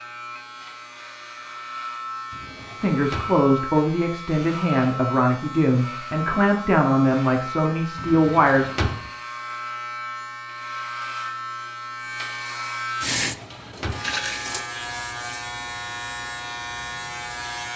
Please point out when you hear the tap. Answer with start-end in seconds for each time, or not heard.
13.0-14.7.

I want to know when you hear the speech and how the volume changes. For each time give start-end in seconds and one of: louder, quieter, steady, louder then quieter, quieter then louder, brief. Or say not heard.
2.8-8.7 steady.